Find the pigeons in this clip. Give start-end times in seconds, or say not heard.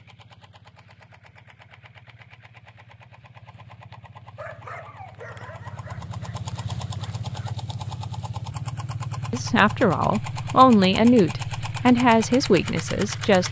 not heard.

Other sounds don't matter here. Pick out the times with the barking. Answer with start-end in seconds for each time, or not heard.
4.3-7.5.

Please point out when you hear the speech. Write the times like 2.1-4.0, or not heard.
9.3-13.4.